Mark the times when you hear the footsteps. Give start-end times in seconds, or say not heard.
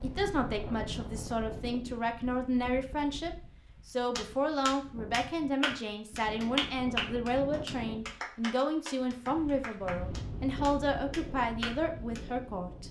not heard.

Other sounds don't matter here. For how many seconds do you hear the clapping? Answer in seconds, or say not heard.
8 s.